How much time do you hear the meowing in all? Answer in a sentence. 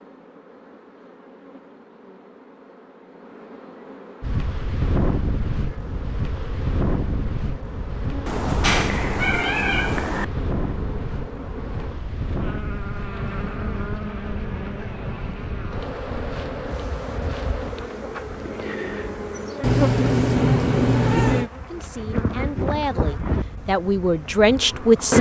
The meowing can be heard for 4 seconds in total.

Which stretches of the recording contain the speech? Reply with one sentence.
You can hear the speech from 21.6 to 25.1 s.